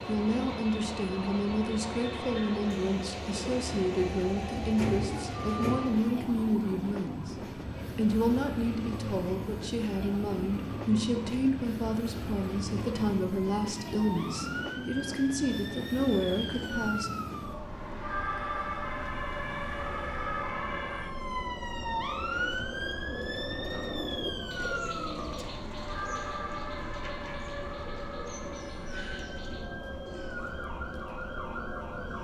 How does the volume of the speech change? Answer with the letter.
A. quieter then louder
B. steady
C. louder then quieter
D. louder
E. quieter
B.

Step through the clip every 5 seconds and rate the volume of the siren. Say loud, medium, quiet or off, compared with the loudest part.
medium, medium, medium, loud, loud, medium, medium.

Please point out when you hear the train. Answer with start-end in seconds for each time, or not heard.
0.0-32.1.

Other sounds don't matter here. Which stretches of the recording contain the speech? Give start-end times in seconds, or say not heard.
0.1-7.3, 8.0-17.1.